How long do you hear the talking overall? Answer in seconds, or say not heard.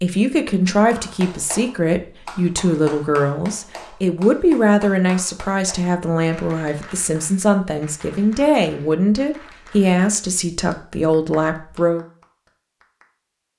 12 s.